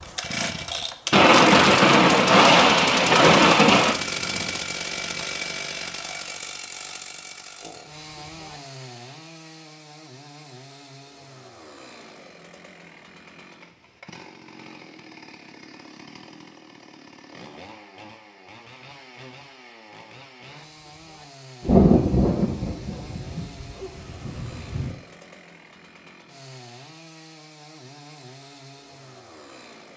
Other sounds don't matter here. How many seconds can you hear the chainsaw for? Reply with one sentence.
The chainsaw can be heard for 30 seconds in total.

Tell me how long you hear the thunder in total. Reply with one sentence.
The thunder can be heard for 7 seconds in total.